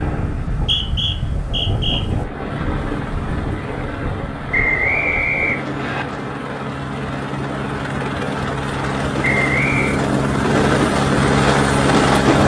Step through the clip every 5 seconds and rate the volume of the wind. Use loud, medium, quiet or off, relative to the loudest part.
medium, medium, loud.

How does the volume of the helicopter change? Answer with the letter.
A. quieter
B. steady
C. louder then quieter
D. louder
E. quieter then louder
D.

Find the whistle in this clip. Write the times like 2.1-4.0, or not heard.
0.5-2.0, 4.5-6.0, 9.2-10.0.